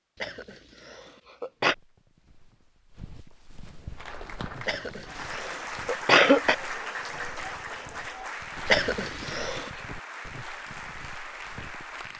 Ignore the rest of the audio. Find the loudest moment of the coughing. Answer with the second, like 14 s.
6 s.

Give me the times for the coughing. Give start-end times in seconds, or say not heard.
0.2-1.8, 4.7-6.5, 8.7-9.7.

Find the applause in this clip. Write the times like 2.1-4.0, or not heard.
4.0-12.1.